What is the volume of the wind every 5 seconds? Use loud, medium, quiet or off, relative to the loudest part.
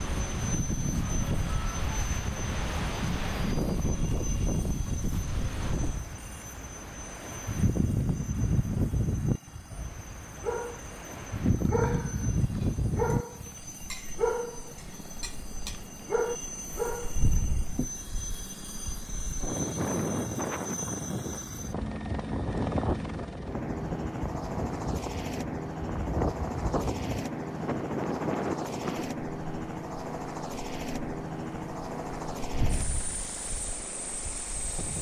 loud, loud, loud, medium, loud, loud, medium.